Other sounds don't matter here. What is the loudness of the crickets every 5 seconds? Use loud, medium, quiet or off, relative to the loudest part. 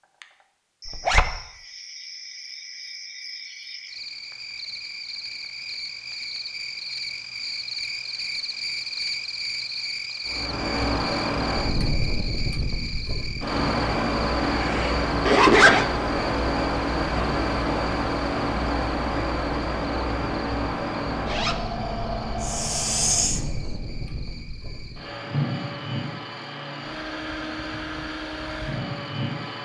medium, loud, loud, medium, quiet, quiet.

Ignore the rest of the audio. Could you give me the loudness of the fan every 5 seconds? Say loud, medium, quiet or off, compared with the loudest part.
off, off, loud, loud, medium, medium.